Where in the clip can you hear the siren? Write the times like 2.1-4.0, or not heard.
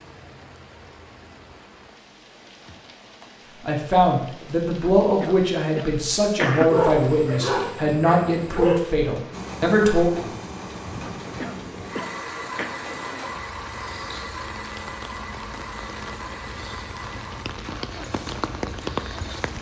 not heard.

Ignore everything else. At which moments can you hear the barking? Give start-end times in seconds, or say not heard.
6.7-8.8.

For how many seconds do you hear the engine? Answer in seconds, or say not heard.
10 s.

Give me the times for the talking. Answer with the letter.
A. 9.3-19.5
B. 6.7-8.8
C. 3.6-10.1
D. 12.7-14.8
C.